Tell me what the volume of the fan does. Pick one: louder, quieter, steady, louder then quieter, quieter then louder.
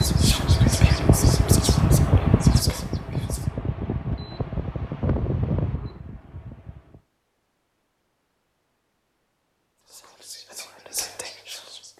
quieter.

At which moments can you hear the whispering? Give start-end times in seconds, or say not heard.
0.0-3.5, 9.8-11.9.